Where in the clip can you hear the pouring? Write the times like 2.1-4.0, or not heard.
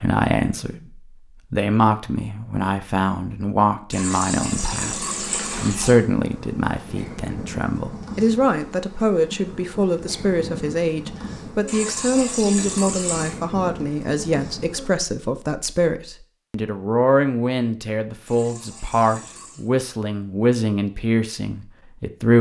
3.9-6.0, 11.7-13.3, 18.2-19.7.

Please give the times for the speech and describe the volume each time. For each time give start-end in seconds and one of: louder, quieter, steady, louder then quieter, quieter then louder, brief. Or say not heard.
0.0-22.3 steady.